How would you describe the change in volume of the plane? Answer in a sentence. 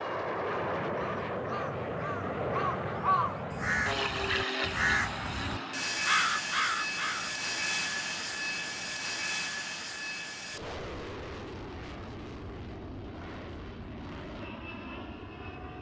The loudness of the plane goes down.